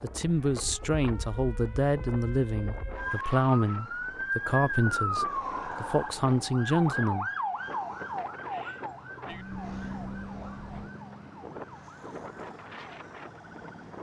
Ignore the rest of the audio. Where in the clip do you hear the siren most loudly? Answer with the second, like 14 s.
5 s.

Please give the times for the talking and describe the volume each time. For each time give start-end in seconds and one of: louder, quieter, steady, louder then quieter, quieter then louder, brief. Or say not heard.
0.0-7.3 steady.